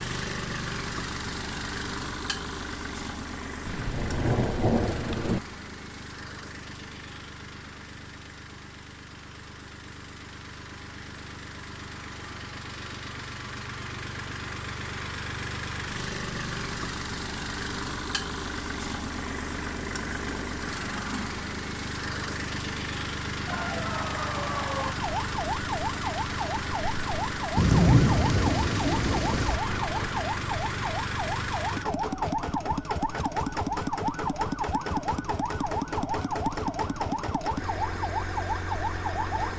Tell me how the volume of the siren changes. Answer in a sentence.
The loudness of the siren stays about the same.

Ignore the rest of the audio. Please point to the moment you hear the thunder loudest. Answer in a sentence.
The volume of the thunder peaks at 28 seconds.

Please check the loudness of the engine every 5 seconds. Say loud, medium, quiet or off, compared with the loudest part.
loud, medium, medium, loud, loud, loud, loud, loud.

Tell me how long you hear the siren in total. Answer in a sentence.
You can hear the siren for 16 seconds altogether.